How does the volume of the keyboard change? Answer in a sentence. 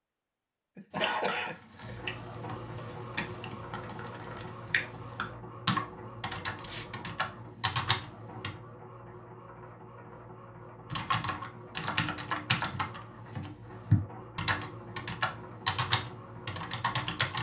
The volume of the keyboard goes up.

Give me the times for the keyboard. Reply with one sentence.
You can hear the keyboard from 0.9 to 8.5 s and from 10.9 to 17.3 s.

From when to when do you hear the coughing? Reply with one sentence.
The coughing can be heard from 0.8 to 2.0 s.